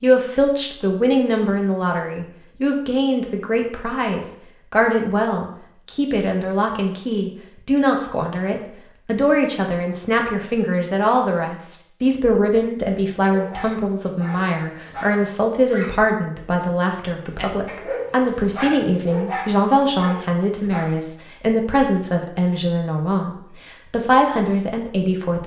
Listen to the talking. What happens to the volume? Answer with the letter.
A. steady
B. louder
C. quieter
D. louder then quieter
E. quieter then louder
A.